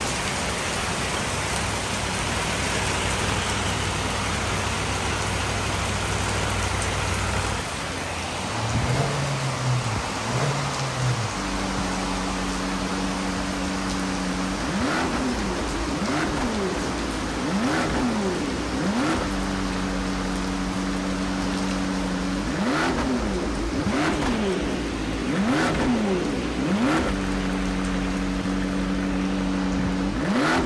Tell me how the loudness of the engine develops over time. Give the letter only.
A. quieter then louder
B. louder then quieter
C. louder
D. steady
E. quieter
C.